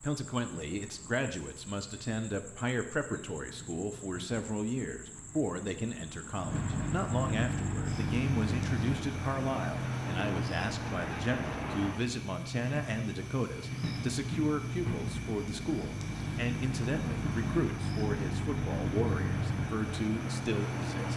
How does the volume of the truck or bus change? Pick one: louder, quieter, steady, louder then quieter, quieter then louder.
louder.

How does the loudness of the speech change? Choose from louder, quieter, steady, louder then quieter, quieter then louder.
steady.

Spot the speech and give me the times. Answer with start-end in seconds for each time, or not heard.
0.0-21.1.